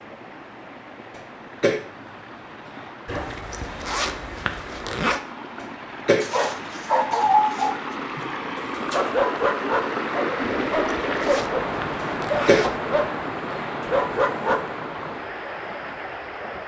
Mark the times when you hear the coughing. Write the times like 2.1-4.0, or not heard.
1.1-1.8, 5.6-6.2, 11.9-12.7.